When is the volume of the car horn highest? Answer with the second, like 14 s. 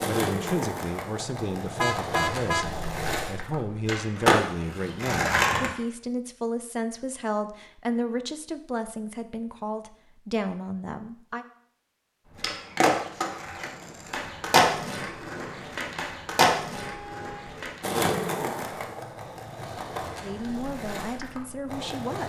2 s.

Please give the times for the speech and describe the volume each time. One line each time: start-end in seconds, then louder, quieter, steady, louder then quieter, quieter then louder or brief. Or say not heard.
0.1-11.4 steady
20.2-22.2 brief.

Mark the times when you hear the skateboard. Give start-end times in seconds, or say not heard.
0.0-5.7, 12.3-22.2.